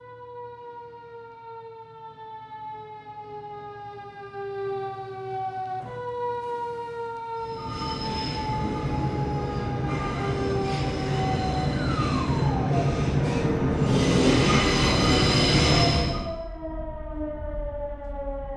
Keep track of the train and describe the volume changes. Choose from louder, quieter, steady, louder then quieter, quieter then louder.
louder.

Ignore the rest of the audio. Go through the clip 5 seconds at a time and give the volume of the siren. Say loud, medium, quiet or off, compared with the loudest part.
medium, loud, loud, loud.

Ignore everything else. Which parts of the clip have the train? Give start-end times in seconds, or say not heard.
7.3-16.2.